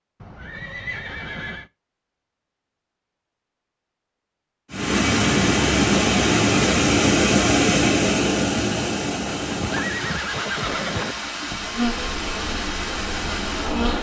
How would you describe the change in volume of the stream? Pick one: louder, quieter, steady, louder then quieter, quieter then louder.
quieter.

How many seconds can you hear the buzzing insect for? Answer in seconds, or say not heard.
2 s.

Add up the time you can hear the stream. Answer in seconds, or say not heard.
9 s.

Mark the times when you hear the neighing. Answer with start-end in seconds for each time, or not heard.
0.2-1.7, 9.3-11.2.